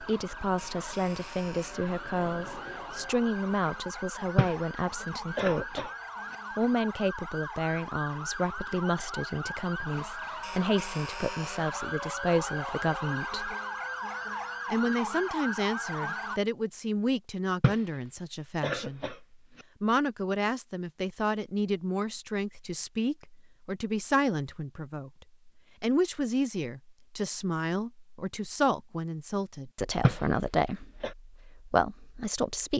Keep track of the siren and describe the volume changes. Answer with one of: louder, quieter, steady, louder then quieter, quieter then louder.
louder.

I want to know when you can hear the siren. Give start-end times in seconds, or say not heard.
0.0-16.4.